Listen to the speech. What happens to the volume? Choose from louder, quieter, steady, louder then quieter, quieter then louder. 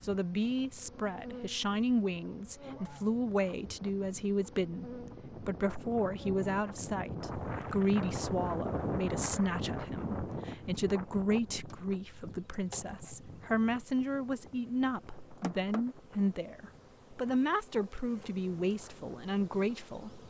steady.